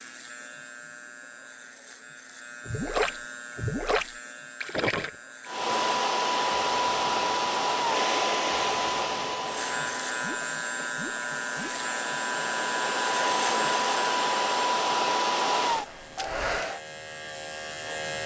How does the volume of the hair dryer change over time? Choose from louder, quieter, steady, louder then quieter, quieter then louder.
quieter then louder.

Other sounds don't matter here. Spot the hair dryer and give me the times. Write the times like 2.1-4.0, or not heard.
5.5-16.8.